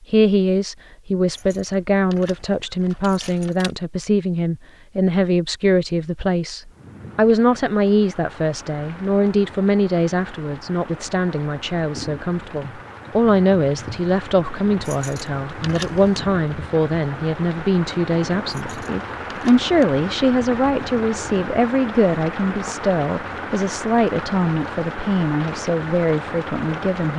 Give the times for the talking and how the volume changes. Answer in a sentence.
You can hear the talking from 0.1 to 27.1 s, at a steady volume.